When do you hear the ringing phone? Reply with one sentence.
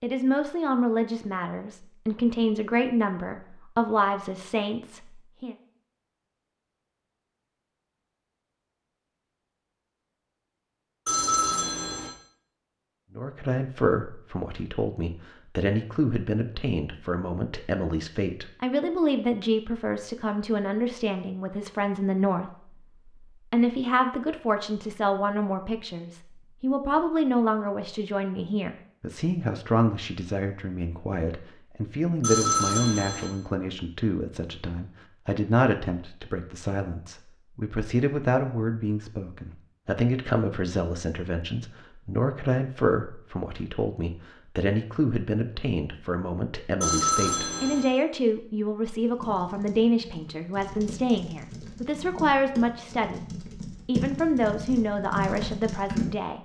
You can hear the ringing phone from 11.1 to 12.1 s, from 32.2 to 33.2 s and from 46.8 to 47.9 s.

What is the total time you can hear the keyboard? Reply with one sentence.
You can hear the keyboard for 7 seconds altogether.